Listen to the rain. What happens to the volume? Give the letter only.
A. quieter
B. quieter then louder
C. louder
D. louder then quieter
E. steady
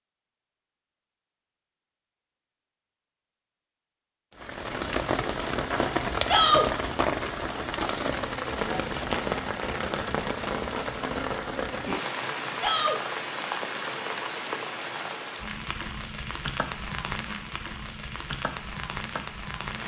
A.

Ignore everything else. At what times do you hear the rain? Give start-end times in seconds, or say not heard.
4.3-19.8.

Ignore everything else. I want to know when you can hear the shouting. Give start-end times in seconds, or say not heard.
6.2-6.7, 12.6-13.0.